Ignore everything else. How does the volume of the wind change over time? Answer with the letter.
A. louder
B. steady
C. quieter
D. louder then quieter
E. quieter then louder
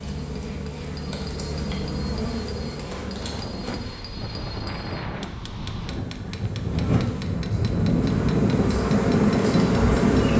A.